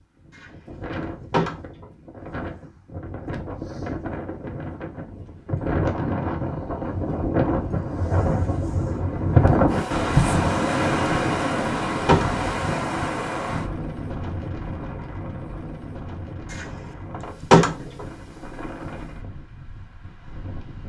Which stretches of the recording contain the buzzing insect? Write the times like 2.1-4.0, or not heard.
not heard.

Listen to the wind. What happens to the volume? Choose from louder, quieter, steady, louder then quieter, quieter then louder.
louder then quieter.